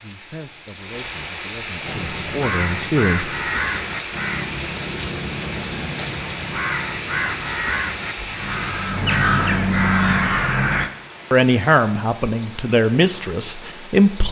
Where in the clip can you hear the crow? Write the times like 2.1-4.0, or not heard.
1.8-10.9.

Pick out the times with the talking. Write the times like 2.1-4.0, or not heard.
0.0-3.4, 11.3-14.2.